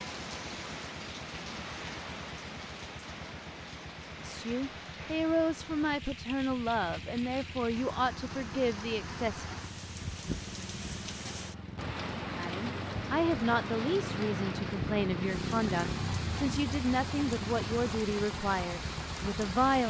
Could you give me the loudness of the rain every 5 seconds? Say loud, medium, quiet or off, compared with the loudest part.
loud, medium, loud, loud.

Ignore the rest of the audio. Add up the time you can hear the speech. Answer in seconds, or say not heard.
13 s.